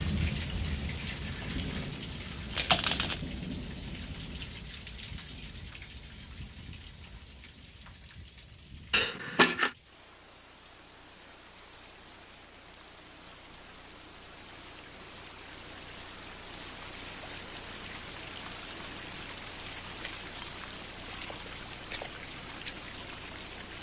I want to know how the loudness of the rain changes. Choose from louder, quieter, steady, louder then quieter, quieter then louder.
quieter then louder.